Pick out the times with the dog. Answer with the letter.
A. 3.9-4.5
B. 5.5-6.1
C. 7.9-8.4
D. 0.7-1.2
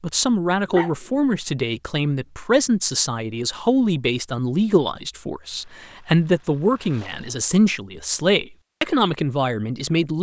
D.